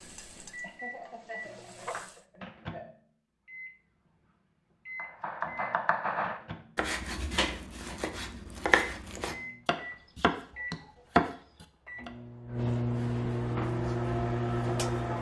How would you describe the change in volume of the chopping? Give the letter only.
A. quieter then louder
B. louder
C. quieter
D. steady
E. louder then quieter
B.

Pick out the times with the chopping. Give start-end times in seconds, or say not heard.
5.0-12.1.